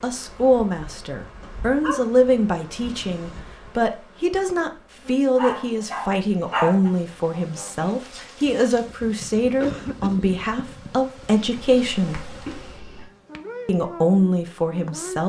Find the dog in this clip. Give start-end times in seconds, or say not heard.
1.4-3.4, 5.3-6.9, 11.6-13.1.